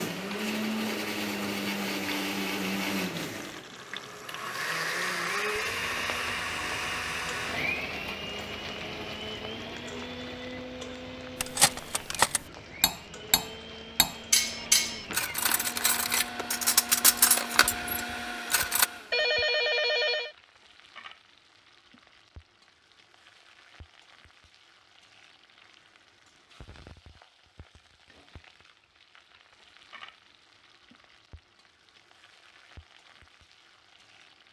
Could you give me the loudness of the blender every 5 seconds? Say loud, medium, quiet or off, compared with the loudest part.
loud, loud, medium, medium, off, off, off.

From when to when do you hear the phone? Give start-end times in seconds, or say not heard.
14.4-15.3, 19.1-20.4.